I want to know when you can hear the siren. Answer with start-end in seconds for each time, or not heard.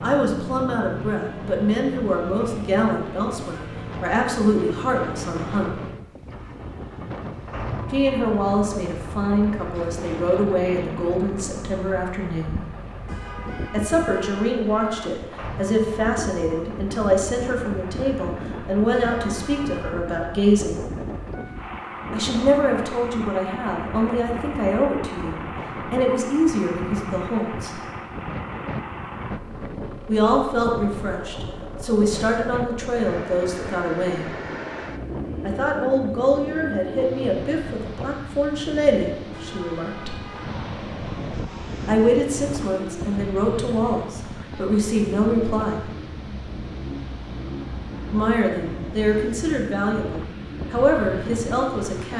not heard.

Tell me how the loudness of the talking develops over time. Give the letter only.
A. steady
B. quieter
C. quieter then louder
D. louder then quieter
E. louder
A.